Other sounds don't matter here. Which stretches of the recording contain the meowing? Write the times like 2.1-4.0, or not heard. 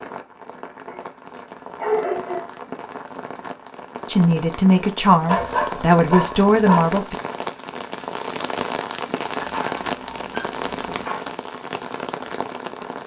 not heard.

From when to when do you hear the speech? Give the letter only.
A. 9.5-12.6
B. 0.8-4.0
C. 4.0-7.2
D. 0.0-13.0
C.